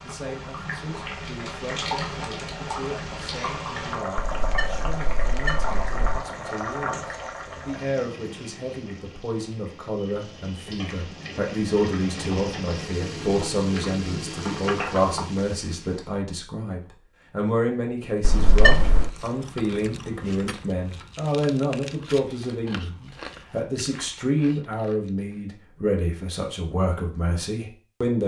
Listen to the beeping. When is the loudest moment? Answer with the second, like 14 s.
19 s.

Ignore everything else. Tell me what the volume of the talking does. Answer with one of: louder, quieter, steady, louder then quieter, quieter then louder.
louder.